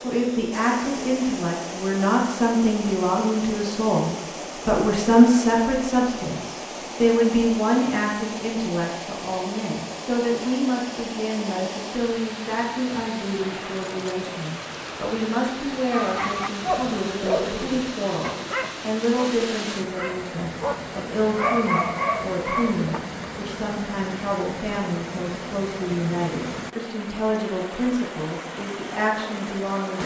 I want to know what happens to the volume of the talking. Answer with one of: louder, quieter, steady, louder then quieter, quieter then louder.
quieter.